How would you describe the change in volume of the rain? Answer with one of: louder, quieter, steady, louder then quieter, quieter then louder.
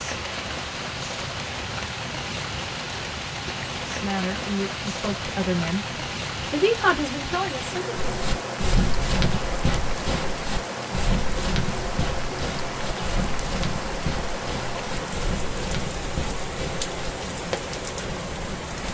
steady.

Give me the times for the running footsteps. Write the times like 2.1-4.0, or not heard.
8.0-17.6.